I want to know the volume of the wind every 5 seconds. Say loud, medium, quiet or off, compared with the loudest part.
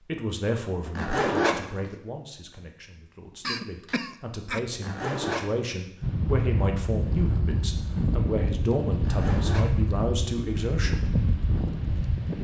off, loud, loud.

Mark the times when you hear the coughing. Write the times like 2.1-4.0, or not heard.
3.4-4.6.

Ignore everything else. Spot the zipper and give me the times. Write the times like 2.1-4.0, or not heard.
0.8-1.9, 4.7-5.7, 8.9-9.9.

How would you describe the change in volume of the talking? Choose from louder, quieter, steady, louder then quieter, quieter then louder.
quieter then louder.